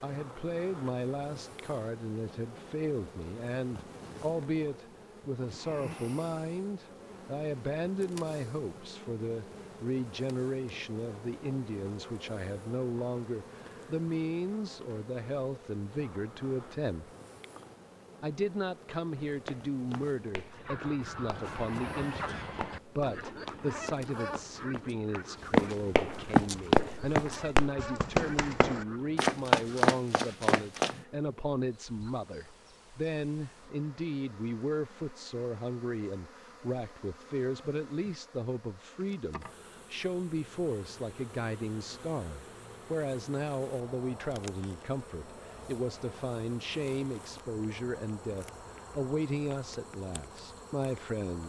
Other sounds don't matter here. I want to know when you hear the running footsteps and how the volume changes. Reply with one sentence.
The running footsteps can be heard from 19.1 to 31.0 s, getting louder.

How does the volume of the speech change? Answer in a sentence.
The loudness of the speech stays about the same.